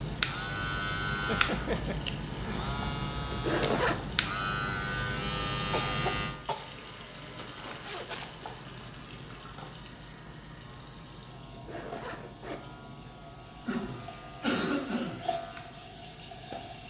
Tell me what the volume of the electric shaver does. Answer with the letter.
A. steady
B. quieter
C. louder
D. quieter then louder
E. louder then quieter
B.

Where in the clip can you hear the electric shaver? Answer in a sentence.
You can hear the electric shaver from 0.0 to 16.8 s.